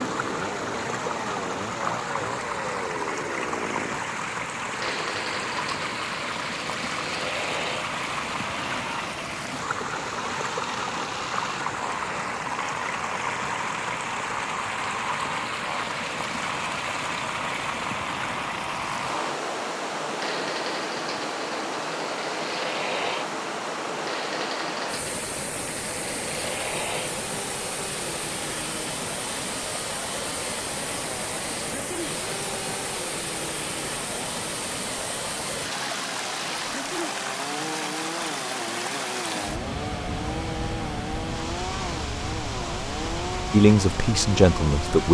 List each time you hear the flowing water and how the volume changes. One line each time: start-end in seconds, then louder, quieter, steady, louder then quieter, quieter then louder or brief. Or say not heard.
0.0-45.0 steady.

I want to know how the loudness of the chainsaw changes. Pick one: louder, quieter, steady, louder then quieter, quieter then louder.
steady.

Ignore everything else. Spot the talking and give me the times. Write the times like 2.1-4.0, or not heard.
43.5-45.0.